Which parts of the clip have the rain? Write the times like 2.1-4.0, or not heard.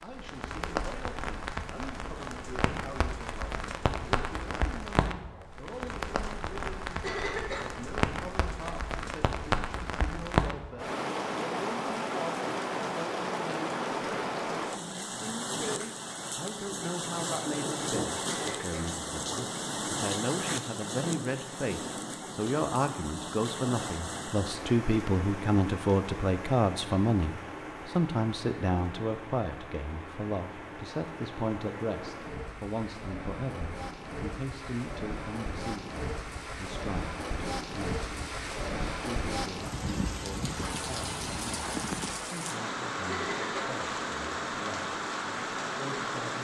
0.0-46.3.